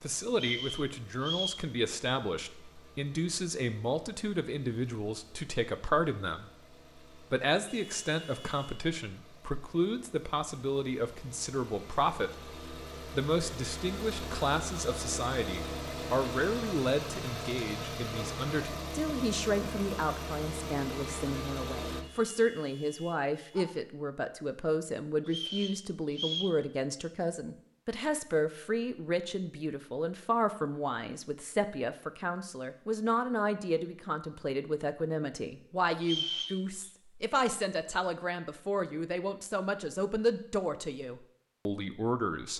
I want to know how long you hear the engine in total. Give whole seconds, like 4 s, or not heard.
22 s.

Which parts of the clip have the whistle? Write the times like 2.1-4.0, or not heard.
0.3-1.6, 25.2-26.6, 36.0-36.6.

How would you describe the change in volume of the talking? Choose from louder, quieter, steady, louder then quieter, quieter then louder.
steady.